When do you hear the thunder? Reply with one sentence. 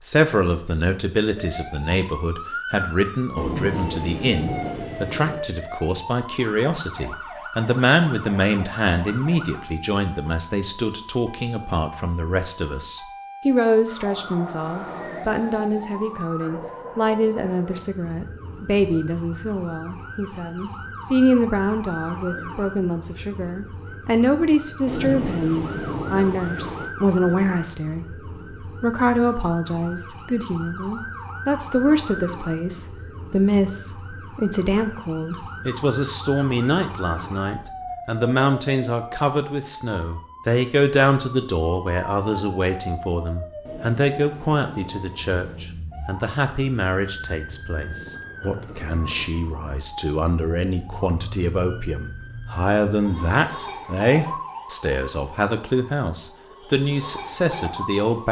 The thunder can be heard from 3.4 to 5.4 s, from 24.9 to 26.9 s and from 43.6 to 45.6 s.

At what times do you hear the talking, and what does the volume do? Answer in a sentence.
You can hear the talking from 0.0 to 58.2 s, at a steady volume.